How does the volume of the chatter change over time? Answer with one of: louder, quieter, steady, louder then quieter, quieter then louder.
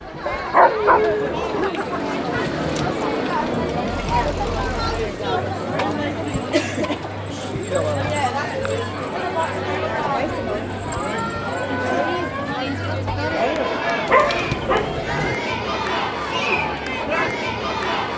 steady.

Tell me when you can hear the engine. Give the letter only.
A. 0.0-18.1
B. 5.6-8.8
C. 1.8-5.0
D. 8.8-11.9
C.